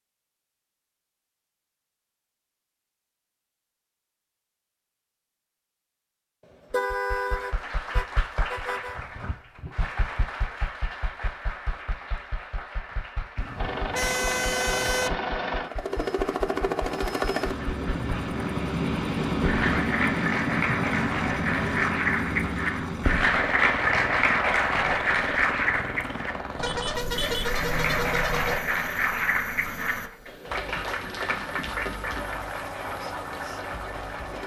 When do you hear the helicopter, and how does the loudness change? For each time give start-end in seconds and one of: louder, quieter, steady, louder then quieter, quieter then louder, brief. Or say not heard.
13.6-34.4 quieter.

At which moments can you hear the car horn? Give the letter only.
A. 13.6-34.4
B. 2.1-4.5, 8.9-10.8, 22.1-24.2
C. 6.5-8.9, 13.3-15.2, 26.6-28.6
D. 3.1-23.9
C.